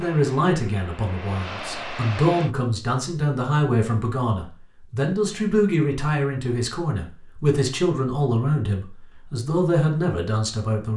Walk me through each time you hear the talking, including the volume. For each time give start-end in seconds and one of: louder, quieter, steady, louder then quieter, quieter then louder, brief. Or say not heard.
0.0-10.9 steady.